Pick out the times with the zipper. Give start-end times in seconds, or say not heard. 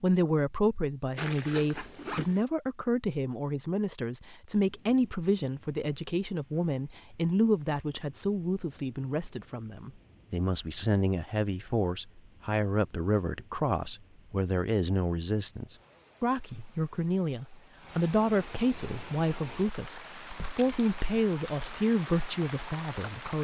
1.1-2.5.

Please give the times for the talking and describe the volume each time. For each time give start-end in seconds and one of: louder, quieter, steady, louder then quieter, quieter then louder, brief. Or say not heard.
0.0-23.3 steady.